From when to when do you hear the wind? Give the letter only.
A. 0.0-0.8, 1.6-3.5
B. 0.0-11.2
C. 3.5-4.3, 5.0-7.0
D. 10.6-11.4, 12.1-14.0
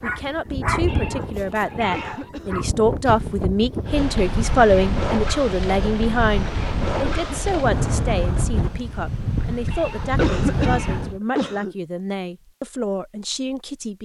B.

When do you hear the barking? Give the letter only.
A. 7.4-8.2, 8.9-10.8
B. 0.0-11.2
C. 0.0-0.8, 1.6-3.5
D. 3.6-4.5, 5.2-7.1
C.